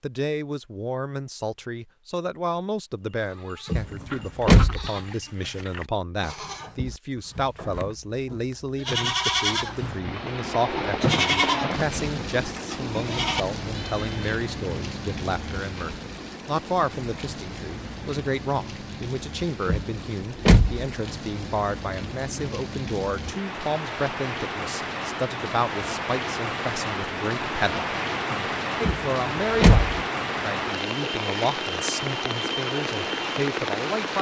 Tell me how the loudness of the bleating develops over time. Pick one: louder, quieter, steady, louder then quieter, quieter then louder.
louder then quieter.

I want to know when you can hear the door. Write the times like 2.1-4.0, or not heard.
3.7-4.9, 19.6-20.9, 28.8-30.0.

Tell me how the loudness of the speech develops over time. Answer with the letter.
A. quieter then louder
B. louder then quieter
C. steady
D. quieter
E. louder
C.